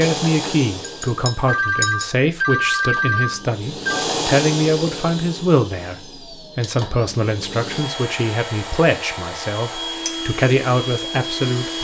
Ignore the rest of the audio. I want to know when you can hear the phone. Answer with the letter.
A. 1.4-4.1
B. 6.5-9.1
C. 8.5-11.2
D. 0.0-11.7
A.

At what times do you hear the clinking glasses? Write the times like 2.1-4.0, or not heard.
0.8-2.1.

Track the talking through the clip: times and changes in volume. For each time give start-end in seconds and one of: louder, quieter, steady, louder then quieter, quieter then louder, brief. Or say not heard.
0.0-11.7 steady.